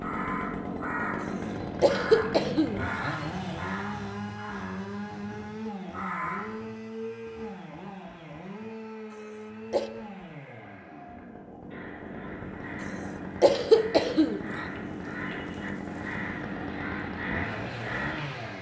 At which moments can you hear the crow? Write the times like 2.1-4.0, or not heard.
0.0-6.6, 11.7-18.5.